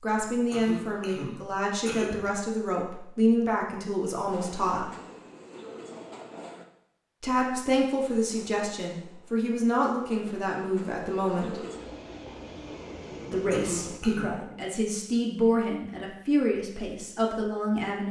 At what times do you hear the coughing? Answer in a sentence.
You can hear the coughing from 0.5 to 2.2 s and from 13.5 to 14.3 s.